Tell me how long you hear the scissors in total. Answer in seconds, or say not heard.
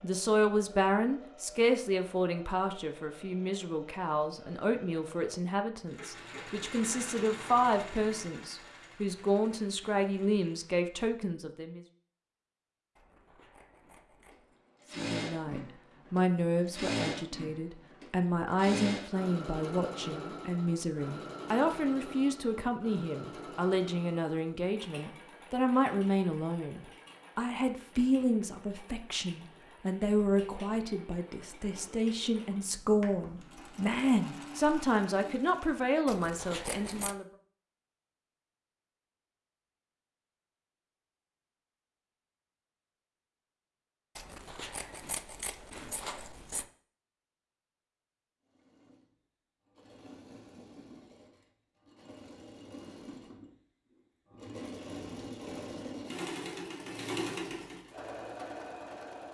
5 s.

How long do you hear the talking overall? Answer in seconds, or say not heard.
34 s.